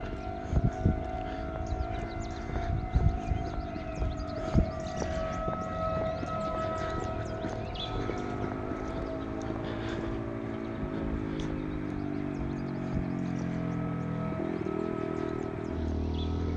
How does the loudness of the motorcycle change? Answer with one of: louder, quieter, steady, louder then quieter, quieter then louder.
louder.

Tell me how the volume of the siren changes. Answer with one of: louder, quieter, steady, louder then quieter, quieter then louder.
quieter.